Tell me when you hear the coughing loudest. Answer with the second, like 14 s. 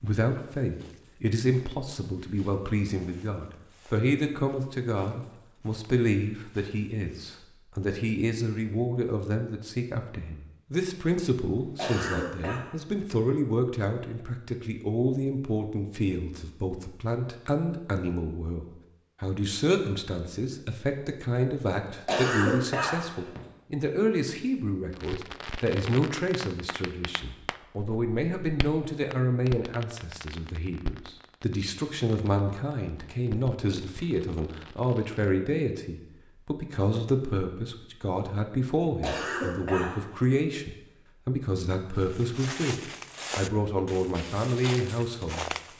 22 s.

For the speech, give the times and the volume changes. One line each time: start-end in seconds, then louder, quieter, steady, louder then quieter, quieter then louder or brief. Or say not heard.
0.0-45.5 steady.